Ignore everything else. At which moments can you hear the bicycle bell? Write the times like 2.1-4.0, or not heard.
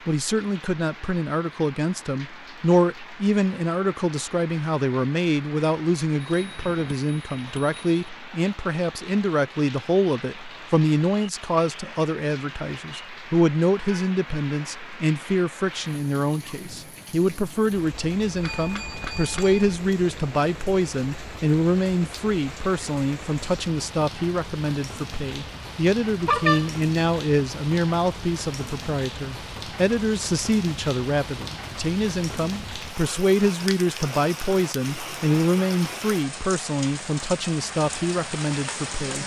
6.2-8.1, 18.4-19.8, 26.2-26.8.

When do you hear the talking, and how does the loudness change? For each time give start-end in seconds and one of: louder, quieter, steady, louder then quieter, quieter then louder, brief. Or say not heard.
0.1-39.2 steady.